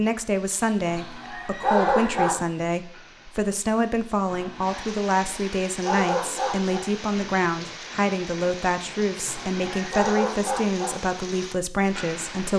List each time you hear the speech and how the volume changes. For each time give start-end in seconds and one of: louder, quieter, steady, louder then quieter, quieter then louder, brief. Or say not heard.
0.0-12.5 steady.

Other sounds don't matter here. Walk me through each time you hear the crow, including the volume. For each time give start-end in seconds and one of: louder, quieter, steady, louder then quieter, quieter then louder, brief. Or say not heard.
not heard.